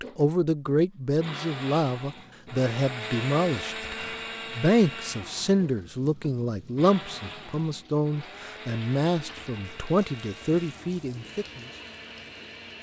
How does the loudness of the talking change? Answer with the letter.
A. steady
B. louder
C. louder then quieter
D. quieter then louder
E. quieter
A.